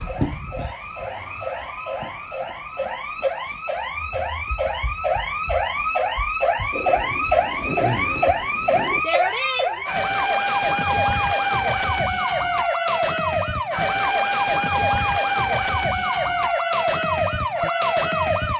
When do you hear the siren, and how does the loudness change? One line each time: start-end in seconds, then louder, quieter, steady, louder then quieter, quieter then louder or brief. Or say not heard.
0.0-18.5 louder.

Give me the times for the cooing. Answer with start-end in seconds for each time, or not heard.
6.7-9.1.